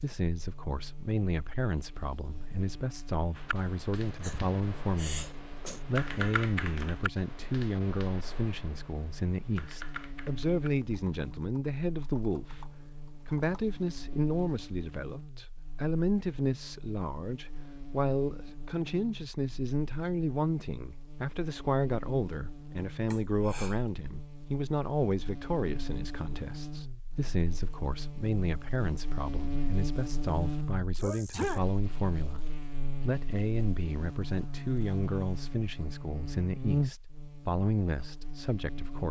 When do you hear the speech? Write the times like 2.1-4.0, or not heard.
0.0-5.2, 5.8-32.4, 33.0-39.0.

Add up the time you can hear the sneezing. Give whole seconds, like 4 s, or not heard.
3 s.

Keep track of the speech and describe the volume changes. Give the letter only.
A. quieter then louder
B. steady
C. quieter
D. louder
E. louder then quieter
B.